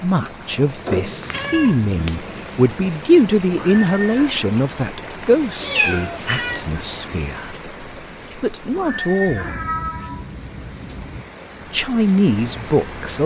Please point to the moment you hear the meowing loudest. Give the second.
6 s.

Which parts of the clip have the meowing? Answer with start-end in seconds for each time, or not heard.
1.0-2.1, 5.6-6.6, 9.2-11.2.